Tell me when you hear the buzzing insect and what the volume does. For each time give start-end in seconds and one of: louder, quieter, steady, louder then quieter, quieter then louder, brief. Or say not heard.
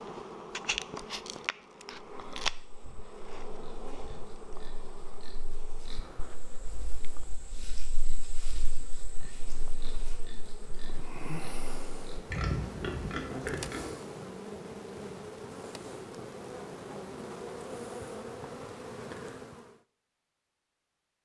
0.0-19.8 quieter then louder.